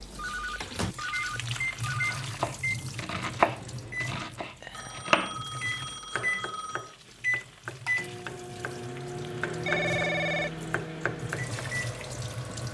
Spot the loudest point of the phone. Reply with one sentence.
The volume of the phone peaks at 10 seconds.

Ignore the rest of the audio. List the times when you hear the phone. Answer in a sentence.
You can hear the phone from 0.1 to 2.2 s, from 4.7 to 7.0 s and from 9.7 to 10.5 s.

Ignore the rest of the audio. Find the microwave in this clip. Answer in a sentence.
The microwave can be heard from 0.1 to 12.6 s.